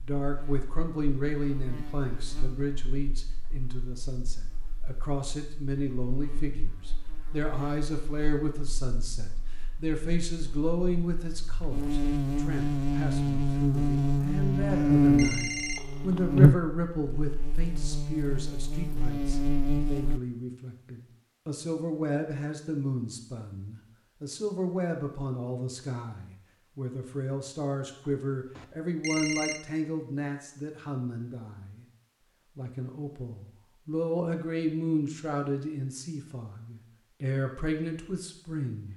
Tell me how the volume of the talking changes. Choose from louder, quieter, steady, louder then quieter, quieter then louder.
steady.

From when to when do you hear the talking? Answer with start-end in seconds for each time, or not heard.
0.0-31.9, 32.5-38.9.